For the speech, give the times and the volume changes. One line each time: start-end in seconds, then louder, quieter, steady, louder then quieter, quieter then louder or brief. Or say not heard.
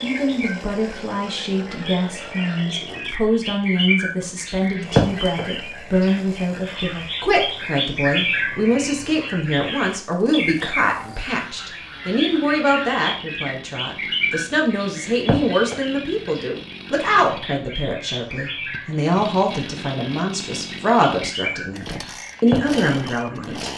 0.0-23.7 steady.